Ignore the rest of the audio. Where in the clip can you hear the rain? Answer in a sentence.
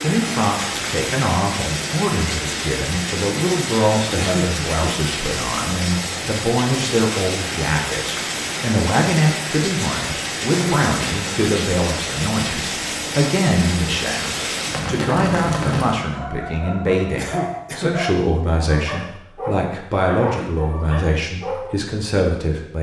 The rain can be heard from 0.0 to 16.1 s.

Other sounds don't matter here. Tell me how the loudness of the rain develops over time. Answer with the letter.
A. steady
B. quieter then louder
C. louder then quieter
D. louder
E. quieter
A.